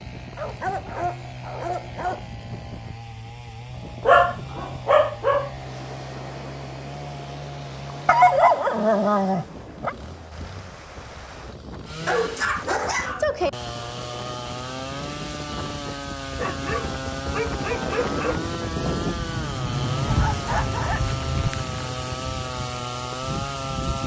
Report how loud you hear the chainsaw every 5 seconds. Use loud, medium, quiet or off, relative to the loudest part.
medium, medium, medium, loud, loud.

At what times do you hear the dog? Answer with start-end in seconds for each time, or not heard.
0.3-2.2, 4.0-5.5, 8.1-9.9, 12.1-13.5, 16.4-18.4, 20.1-21.7.